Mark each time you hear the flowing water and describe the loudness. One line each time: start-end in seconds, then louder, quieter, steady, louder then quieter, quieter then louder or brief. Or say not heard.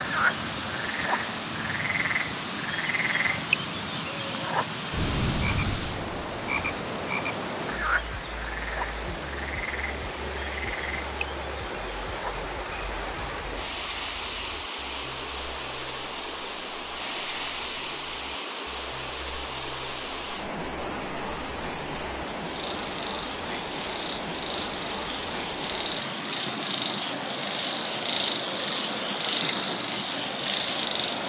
0.0-31.2 steady.